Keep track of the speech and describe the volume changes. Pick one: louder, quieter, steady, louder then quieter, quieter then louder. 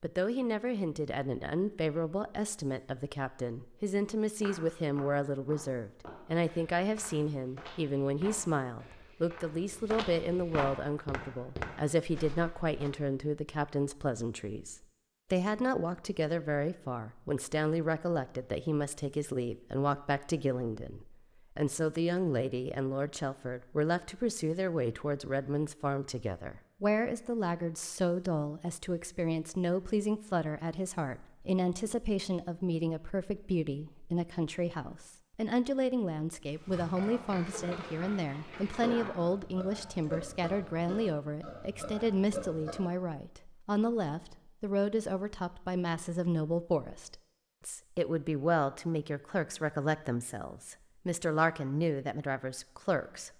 steady.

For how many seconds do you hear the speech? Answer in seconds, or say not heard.
53 s.